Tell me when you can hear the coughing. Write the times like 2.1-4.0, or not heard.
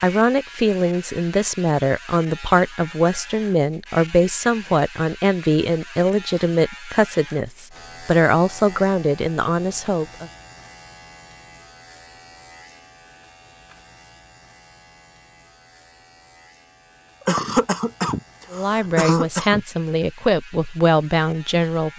17.2-19.6.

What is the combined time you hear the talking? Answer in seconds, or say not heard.
14 s.